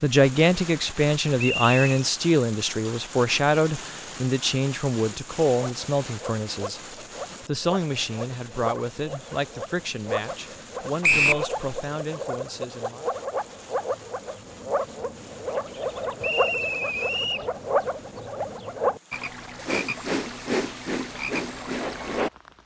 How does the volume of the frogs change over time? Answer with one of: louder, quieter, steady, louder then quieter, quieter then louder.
louder.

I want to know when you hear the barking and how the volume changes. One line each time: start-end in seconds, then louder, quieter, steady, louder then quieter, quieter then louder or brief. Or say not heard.
not heard.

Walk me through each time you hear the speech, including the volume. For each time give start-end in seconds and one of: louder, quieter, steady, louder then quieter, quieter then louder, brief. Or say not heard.
0.0-13.1 quieter.